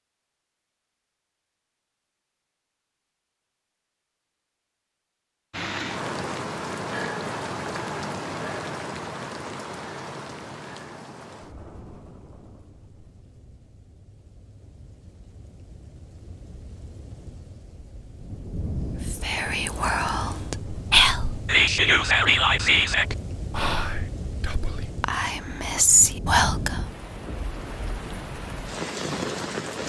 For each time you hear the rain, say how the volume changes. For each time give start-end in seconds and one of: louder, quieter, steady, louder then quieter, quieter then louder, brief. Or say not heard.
5.5-29.8 quieter then louder.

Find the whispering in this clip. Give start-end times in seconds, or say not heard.
19.1-26.8.